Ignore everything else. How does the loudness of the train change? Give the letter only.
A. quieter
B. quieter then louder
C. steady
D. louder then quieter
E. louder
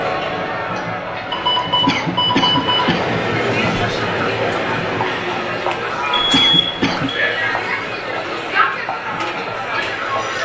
D.